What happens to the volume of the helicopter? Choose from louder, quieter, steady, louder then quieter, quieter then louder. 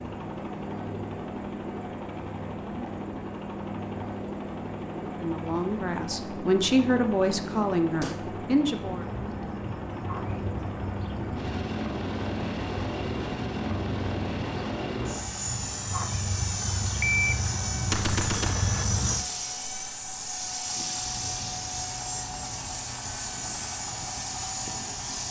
steady.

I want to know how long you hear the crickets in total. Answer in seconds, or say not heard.
16 s.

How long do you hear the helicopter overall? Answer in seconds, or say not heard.
25 s.